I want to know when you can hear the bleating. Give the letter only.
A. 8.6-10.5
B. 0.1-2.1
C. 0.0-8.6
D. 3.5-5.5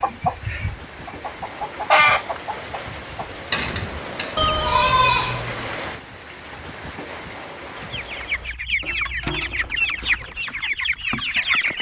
D.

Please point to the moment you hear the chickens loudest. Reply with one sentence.
The loudest moment of the chickens is at 2 seconds.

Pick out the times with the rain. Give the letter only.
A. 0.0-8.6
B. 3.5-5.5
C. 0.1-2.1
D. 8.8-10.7
A.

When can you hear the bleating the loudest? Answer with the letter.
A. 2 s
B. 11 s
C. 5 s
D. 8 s
C.